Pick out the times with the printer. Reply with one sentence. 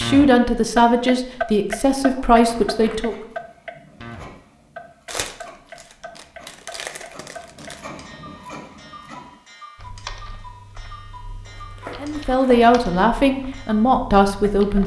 You can hear the printer from 3.0 to 9.4 s.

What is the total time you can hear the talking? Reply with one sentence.
You can hear the talking for 6 seconds altogether.